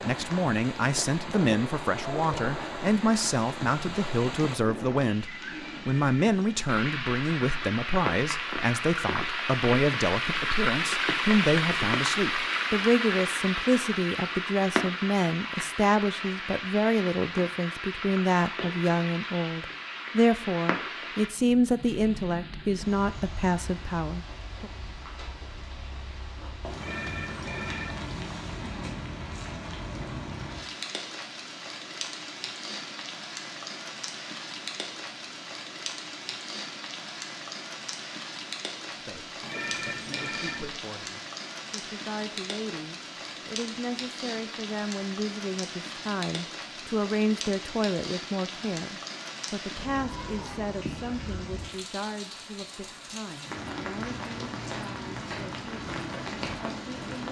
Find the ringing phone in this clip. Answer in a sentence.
You can hear the ringing phone from 5.8 to 6.6 s, from 26.8 to 28.1 s and from 39.4 to 40.7 s.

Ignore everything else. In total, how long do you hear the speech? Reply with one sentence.
You can hear the speech for 43 seconds altogether.